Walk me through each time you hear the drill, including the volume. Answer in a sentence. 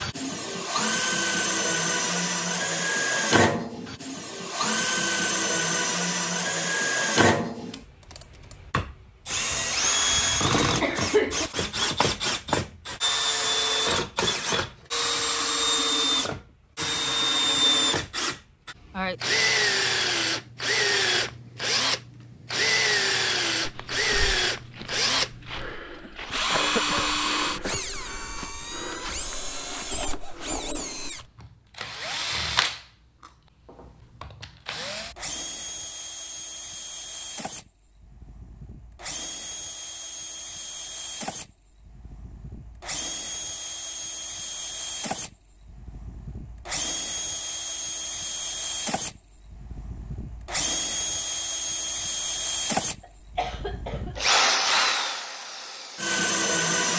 You can hear the drill from 0.0 to 56.9 s, getting quieter then louder.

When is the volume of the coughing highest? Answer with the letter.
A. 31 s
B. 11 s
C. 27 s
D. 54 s
B.